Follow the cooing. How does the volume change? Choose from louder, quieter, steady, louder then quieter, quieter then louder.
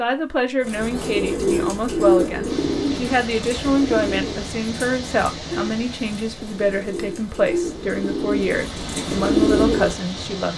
quieter then louder.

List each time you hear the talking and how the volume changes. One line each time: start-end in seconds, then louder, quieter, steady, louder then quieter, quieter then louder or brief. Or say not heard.
0.0-10.5 steady.